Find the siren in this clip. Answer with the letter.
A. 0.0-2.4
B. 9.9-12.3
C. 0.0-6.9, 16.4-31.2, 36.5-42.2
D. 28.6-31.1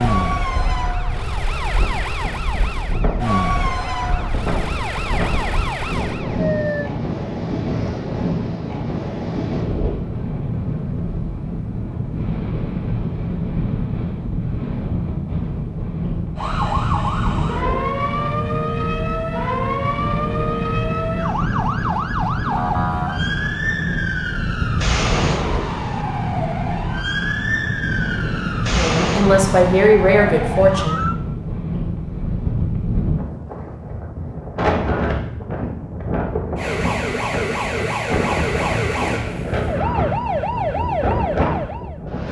C.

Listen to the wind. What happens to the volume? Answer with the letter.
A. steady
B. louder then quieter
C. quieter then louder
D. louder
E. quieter
A.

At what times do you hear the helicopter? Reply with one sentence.
You can't hear the helicopter here.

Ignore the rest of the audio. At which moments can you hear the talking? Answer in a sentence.
You can hear the talking from 28.6 to 31.1 s.